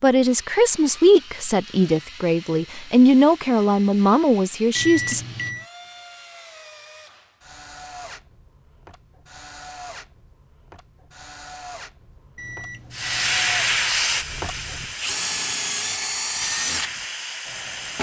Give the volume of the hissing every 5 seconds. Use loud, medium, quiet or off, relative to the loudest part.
off, off, loud, medium.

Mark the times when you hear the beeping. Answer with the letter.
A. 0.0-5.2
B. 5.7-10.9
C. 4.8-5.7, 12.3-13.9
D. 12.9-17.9
C.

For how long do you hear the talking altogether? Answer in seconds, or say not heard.
5 s.